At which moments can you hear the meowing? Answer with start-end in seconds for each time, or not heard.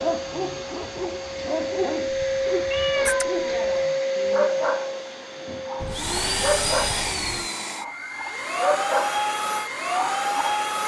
2.1-3.4, 5.8-7.5.